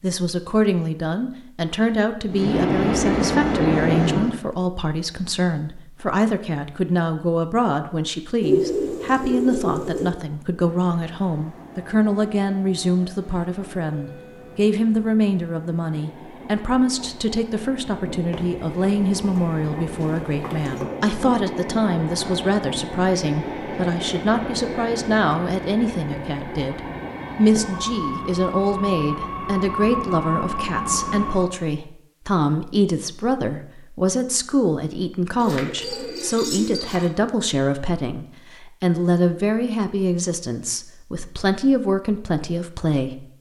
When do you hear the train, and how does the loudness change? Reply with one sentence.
The train can be heard briefly from 2.2 to 4.4 s; and from 10.5 to 31.6 s, getting louder.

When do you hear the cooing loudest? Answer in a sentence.
The volume of the cooing peaks at 9 seconds.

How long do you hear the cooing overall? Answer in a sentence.
The cooing can be heard for 6 seconds in total.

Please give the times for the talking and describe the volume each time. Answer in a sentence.
The talking can be heard from 0.0 to 43.2 s, at a steady volume.